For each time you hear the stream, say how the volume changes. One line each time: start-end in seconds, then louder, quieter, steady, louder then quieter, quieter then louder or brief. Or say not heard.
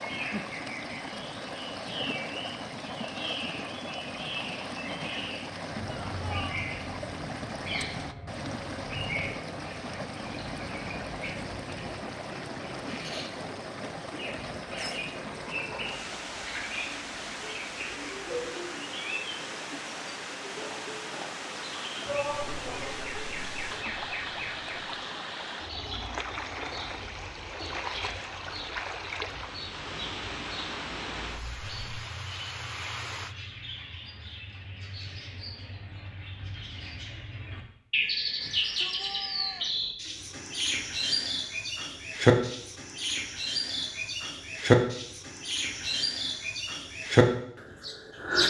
0.0-33.4 steady.